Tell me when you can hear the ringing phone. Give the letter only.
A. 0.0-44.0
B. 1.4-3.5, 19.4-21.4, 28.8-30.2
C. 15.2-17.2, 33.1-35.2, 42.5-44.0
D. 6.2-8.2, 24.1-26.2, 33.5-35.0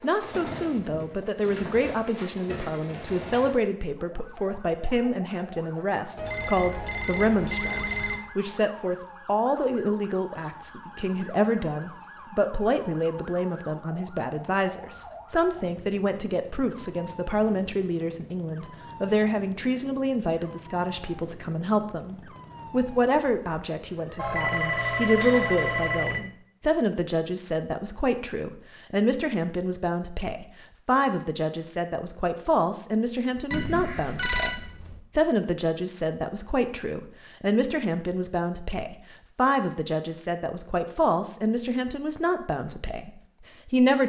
D.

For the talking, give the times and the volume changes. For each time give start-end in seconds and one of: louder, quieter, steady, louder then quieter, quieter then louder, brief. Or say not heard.
0.0-44.0 steady.